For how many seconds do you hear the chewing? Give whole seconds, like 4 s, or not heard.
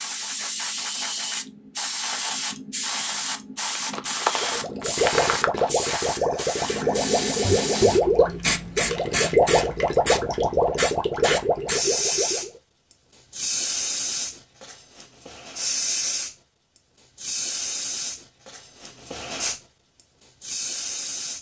2 s.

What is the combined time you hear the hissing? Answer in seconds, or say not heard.
21 s.